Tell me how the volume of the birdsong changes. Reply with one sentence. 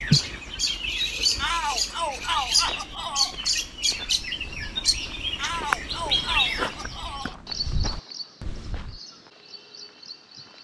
The volume of the birdsong goes down.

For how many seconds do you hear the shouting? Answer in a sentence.
The shouting can be heard for 4 seconds in total.